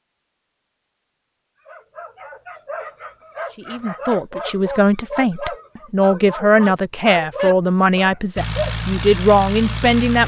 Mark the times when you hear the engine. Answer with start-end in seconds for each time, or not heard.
8.3-10.2.